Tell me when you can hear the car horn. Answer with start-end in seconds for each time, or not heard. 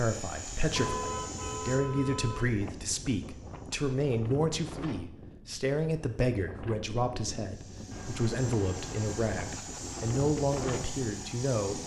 0.8-2.6, 7.9-9.3.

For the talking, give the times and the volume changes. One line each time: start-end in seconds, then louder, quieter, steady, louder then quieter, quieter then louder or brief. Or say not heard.
0.0-11.8 steady.